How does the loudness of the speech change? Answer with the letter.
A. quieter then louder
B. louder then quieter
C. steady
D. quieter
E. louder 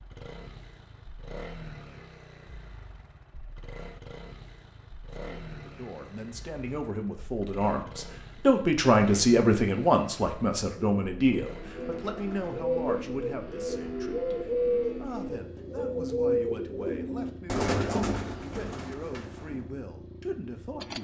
B.